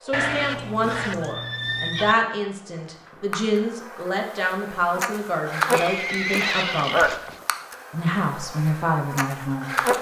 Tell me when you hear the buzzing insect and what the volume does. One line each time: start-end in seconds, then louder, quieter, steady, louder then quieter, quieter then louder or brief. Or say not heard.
0.0-9.9 louder then quieter.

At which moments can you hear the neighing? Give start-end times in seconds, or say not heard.
0.1-2.1, 5.7-7.4.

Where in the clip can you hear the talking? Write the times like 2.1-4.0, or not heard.
0.0-7.2, 7.9-9.8.